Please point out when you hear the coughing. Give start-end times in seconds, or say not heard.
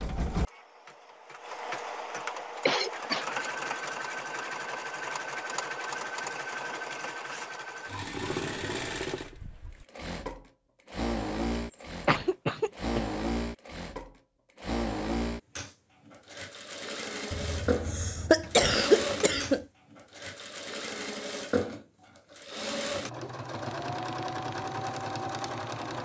2.6-3.2, 11.7-13.0, 17.3-19.6.